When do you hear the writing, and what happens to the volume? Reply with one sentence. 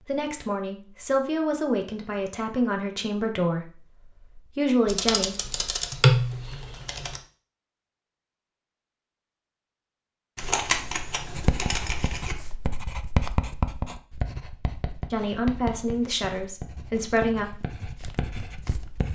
You can hear the writing from 11.3 to 19.1 s, getting louder then quieter.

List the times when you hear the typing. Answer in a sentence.
The typing can be heard from 4.8 to 7.2 s and from 10.3 to 12.3 s.